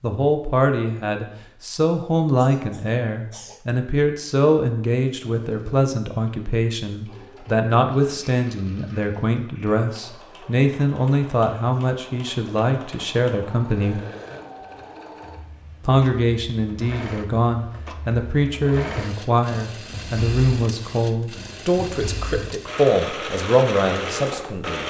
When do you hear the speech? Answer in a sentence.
The speech can be heard from 0.0 to 14.0 s and from 15.8 to 24.8 s.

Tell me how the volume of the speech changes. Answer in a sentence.
The volume of the speech stays about the same.